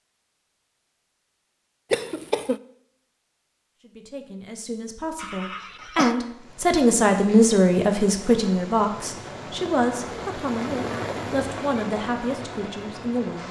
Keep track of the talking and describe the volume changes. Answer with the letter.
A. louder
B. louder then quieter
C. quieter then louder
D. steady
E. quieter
B.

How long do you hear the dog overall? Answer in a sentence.
The dog can't be heard in this clip.